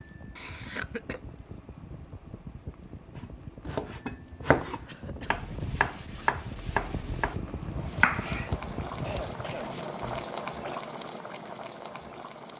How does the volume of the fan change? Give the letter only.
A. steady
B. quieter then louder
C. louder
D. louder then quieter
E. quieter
C.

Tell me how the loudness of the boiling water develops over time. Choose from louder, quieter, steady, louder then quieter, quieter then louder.
louder.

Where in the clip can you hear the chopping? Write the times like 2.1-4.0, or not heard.
3.2-8.6, 9.3-10.2.